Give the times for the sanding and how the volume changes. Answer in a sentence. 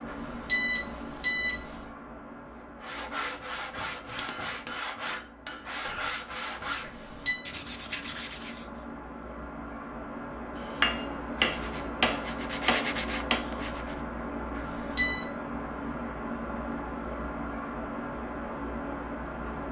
You can hear the sanding from 2.8 to 8.8 s, at a steady volume; and briefly from 11.4 to 14.0 s.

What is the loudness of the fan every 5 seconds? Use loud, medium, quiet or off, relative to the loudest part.
medium, medium, loud, loud.